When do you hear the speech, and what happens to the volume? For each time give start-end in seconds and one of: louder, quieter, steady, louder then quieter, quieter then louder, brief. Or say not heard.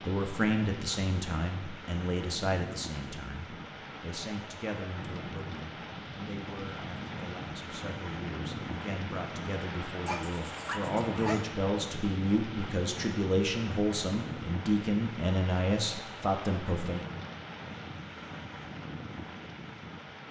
0.0-17.1 quieter then louder.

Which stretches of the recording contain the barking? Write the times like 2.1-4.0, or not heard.
10.1-11.4.